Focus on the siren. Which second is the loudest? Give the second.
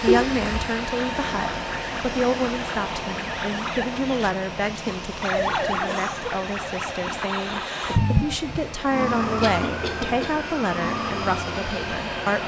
8 s.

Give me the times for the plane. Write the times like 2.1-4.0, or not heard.
0.0-12.4.